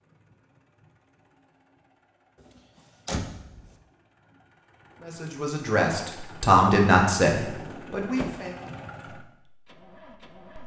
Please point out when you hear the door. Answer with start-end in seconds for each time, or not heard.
2.4-3.6, 7.4-8.4.